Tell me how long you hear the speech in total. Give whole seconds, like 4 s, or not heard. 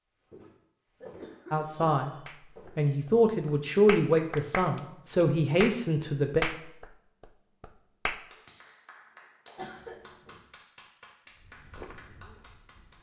5 s.